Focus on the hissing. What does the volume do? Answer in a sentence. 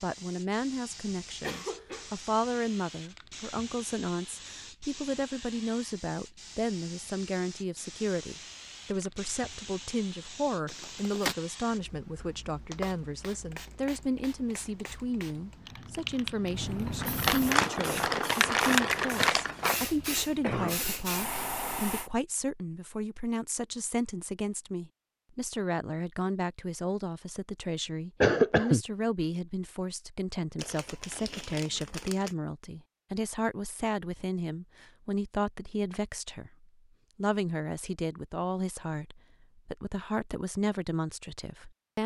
The loudness of the hissing goes up.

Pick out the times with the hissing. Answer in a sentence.
The hissing can be heard from 0.0 to 22.1 s.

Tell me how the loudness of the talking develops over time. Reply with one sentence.
The volume of the talking stays about the same.